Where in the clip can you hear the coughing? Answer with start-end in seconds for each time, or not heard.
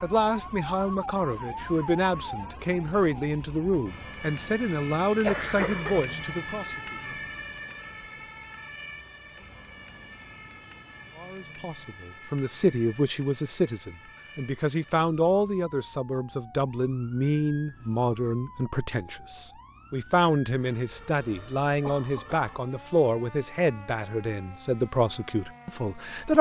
5.2-6.2, 20.9-22.6.